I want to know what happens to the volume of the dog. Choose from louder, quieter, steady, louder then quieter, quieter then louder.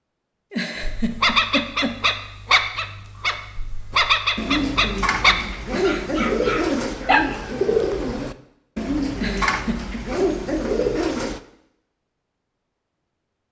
quieter.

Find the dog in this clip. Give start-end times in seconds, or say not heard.
0.8-7.2.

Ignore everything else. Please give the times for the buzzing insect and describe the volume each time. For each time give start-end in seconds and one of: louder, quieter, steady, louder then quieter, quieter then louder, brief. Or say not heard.
not heard.